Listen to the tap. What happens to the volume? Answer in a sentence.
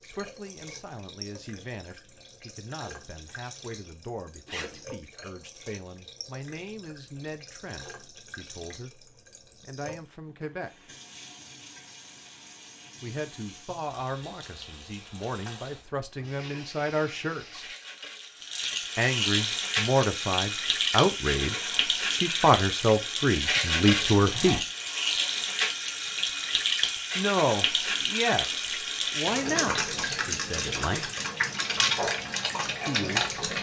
The loudness of the tap goes up.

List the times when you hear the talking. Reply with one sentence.
The talking can be heard from 0.0 to 10.9 s, from 13.0 to 17.6 s, from 18.9 to 24.6 s, from 27.1 to 31.1 s and from 32.9 to 33.3 s.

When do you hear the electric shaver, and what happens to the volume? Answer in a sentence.
You can't hear the electric shaver here.